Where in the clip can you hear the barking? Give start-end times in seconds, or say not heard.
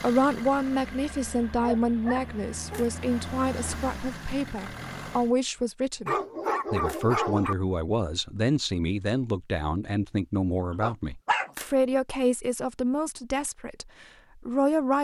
1.6-2.9, 6.0-7.5, 10.8-11.5.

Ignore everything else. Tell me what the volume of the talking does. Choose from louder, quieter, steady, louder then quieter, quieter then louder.
steady.